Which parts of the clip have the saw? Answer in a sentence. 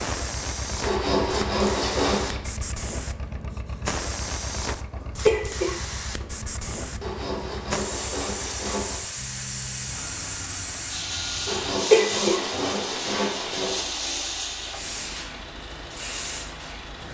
You can hear the saw from 0.8 to 2.4 s, from 7.0 to 9.1 s and from 11.4 to 14.3 s.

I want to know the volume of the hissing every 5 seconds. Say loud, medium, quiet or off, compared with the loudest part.
loud, loud, loud, medium.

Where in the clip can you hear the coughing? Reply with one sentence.
You can hear the coughing from 5.2 to 6.2 s and from 11.9 to 12.4 s.